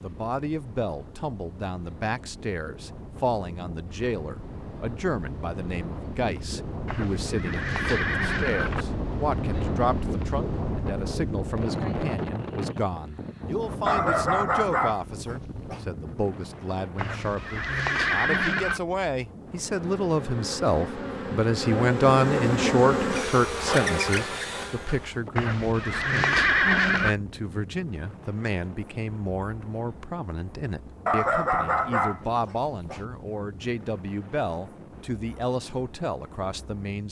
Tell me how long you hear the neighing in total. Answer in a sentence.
The neighing can be heard for 6 seconds in total.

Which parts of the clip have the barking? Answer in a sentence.
The barking can be heard from 13.8 to 15.8 s and from 31.1 to 33.0 s.